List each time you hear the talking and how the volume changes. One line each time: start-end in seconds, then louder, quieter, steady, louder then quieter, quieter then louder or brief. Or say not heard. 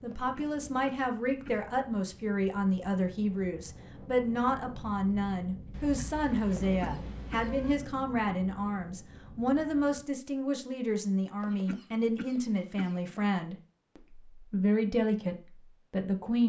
0.0-16.4 steady.